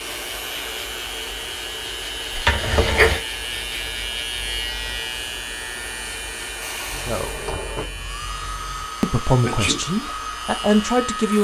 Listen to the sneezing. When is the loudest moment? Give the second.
3 s.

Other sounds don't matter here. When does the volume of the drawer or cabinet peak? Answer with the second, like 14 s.
3 s.